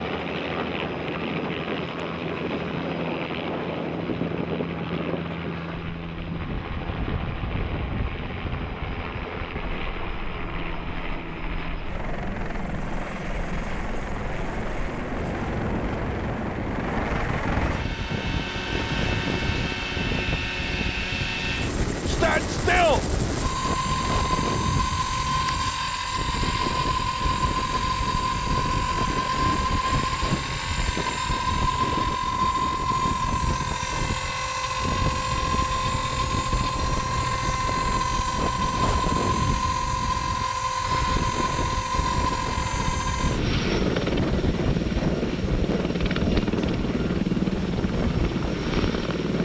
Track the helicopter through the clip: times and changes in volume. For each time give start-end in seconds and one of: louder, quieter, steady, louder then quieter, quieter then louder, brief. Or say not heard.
0.0-49.3 louder.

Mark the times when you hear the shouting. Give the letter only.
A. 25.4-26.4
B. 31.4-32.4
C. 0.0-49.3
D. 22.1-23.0
D.